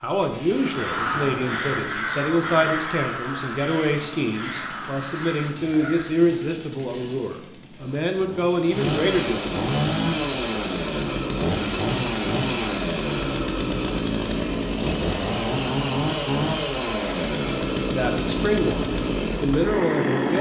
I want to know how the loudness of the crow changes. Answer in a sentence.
The loudness of the crow goes down.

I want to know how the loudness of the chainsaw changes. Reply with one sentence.
The loudness of the chainsaw goes up.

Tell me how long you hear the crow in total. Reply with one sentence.
You can hear the crow for 6 seconds altogether.